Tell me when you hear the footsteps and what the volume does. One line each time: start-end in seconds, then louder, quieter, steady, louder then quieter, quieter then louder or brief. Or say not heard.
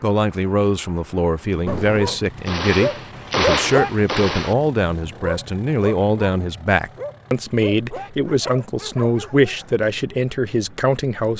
not heard.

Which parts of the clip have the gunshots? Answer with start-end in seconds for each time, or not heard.
1.6-4.5.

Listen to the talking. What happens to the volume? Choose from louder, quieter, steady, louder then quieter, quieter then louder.
steady.